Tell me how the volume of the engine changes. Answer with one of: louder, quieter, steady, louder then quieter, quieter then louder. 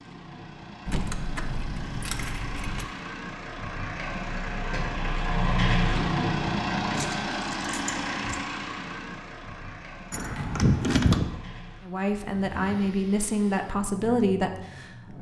louder then quieter.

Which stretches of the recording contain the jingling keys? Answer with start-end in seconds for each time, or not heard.
0.8-2.9, 7.0-8.2, 10.1-11.3.